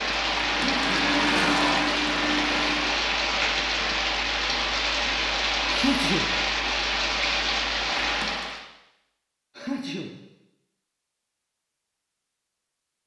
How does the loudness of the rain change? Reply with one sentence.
The volume of the rain stays about the same.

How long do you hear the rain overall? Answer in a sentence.
The rain can be heard for 9 seconds in total.